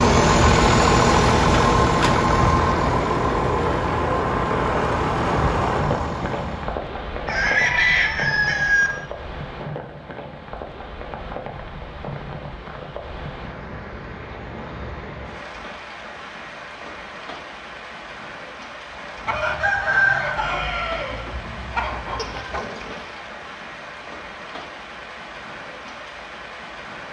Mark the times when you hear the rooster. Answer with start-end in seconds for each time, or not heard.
7.2-8.9, 19.2-22.6.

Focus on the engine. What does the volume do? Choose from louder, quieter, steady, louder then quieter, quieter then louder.
quieter.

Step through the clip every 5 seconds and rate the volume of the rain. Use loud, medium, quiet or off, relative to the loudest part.
loud, loud, medium, medium, medium, medium.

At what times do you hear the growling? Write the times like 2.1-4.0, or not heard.
22.1-23.2.